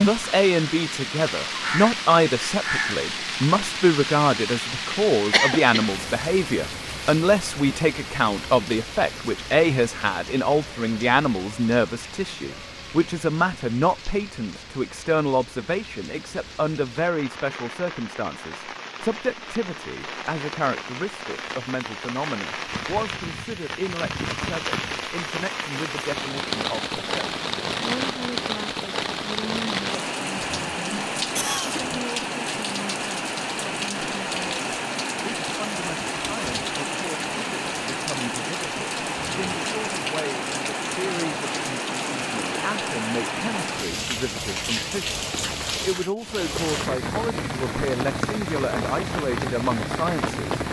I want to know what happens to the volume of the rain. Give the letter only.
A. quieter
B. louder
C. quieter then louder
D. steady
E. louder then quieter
C.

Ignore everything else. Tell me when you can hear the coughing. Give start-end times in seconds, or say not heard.
5.3-5.9, 31.4-31.8.